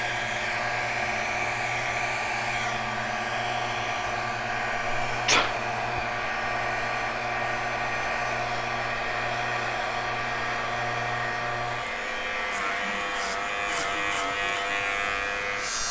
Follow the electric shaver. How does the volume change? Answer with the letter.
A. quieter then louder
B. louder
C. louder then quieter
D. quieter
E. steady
B.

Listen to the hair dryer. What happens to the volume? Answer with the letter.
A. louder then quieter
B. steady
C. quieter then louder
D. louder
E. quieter
E.